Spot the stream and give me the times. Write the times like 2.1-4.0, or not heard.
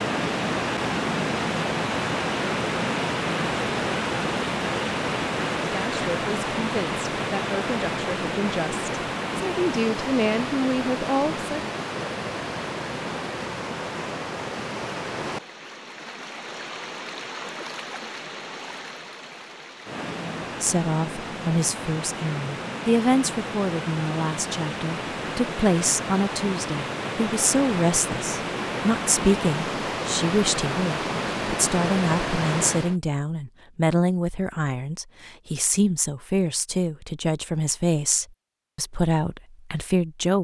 0.0-33.0.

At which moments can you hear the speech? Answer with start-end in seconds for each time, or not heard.
5.7-11.6, 20.4-40.3.